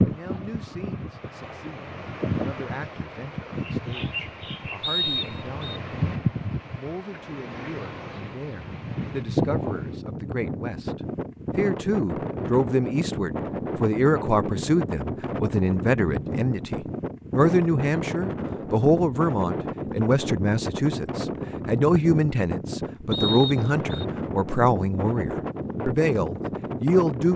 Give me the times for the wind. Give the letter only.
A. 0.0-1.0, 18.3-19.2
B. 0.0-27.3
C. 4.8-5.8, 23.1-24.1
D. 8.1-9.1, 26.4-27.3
B.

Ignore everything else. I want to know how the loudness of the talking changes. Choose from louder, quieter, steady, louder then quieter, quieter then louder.
louder.